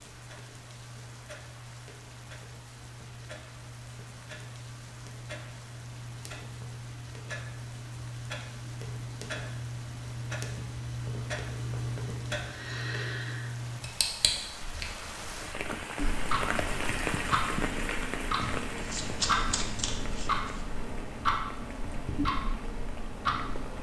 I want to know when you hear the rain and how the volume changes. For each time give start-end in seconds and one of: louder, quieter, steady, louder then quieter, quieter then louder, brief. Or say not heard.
0.0-23.7 louder then quieter.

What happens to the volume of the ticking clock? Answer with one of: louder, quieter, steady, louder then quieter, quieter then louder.
louder.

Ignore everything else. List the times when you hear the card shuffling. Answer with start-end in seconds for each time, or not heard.
18.4-20.6.